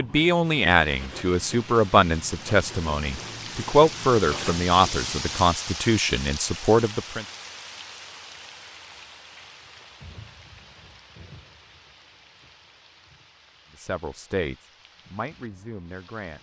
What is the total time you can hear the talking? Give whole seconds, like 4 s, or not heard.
10 s.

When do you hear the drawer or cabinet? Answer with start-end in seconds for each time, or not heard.
not heard.